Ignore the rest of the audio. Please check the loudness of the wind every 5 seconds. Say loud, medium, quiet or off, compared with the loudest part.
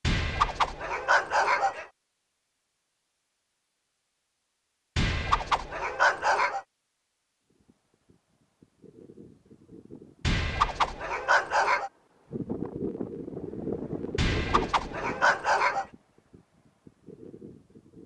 off, quiet, loud, quiet.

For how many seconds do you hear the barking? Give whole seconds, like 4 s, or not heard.
7 s.